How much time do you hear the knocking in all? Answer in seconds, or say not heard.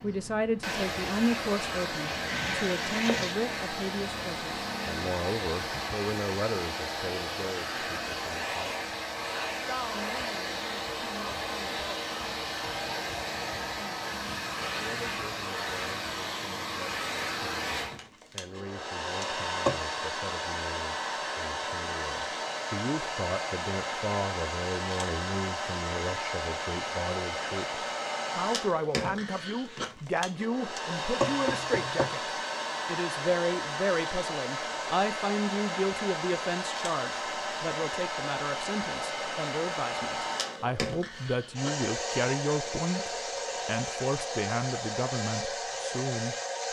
2 s.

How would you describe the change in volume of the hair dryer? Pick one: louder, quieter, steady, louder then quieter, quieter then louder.
steady.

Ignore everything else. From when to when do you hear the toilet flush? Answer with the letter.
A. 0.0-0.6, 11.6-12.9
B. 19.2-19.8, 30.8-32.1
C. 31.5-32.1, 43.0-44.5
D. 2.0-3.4
D.